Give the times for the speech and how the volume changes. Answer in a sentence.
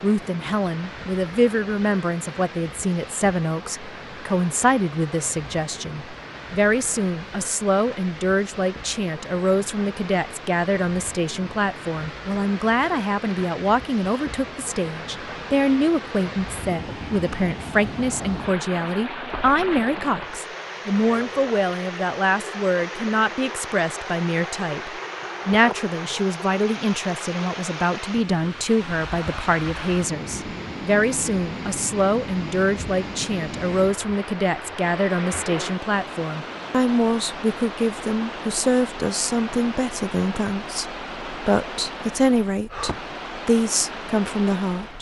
The speech can be heard from 0.0 to 44.9 s, at a steady volume.